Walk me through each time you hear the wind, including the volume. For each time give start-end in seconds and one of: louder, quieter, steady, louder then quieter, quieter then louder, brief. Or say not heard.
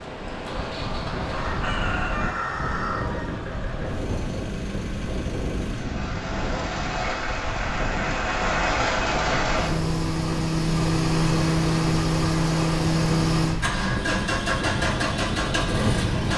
0.0-16.3 steady.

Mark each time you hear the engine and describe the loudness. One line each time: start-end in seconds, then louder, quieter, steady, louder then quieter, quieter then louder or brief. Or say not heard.
0.2-16.3 louder.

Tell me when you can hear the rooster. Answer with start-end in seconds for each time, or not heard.
1.3-3.3.